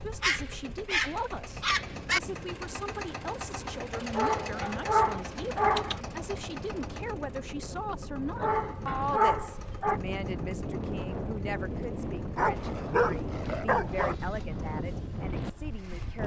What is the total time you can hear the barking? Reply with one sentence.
You can hear the barking for 7 seconds altogether.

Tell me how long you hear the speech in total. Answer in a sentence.
You can hear the speech for 16 seconds altogether.